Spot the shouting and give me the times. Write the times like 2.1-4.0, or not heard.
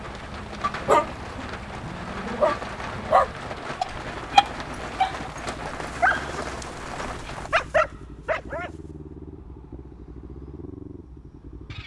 not heard.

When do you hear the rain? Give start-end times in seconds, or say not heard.
0.0-7.5.